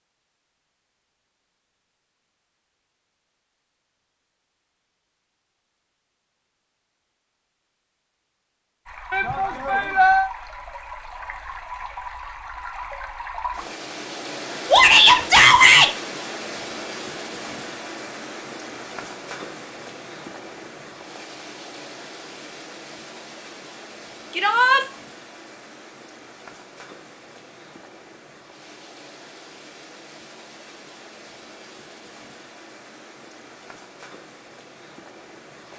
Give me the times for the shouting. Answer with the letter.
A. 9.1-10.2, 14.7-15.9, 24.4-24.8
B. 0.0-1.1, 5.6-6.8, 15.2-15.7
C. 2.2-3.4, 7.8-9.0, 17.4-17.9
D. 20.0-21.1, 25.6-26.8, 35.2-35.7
A.